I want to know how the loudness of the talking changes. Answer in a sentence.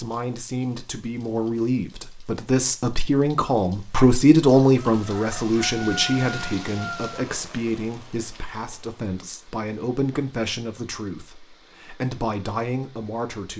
The volume of the talking goes up, then down.